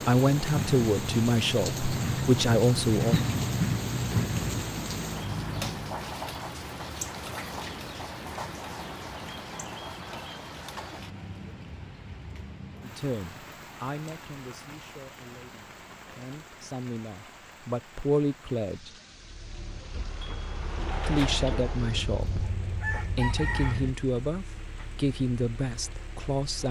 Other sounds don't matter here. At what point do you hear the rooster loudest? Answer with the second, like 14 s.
23 s.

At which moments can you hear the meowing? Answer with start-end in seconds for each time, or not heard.
not heard.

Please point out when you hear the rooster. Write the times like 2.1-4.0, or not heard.
21.9-23.9.